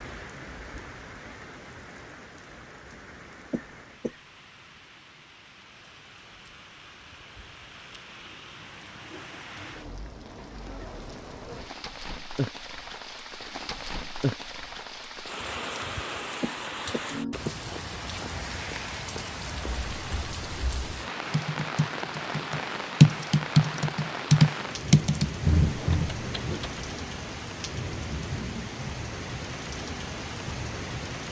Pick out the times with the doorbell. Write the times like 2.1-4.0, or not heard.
not heard.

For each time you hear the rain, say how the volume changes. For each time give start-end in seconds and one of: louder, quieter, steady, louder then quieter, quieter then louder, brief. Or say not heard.
0.0-31.2 louder.